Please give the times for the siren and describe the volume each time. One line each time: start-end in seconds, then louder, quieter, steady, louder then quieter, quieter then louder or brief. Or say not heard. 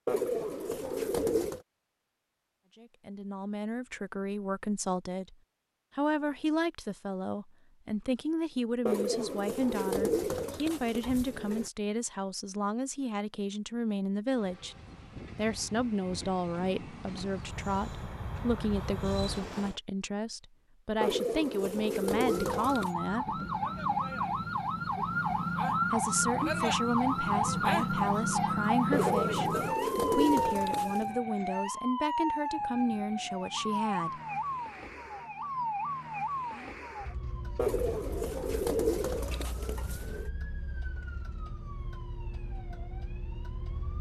22.1-43.9 quieter.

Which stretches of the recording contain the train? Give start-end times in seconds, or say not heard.
14.3-19.8.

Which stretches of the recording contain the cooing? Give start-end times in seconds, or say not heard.
0.1-1.6, 8.8-11.7, 21.0-22.9, 28.9-31.1, 37.5-40.3.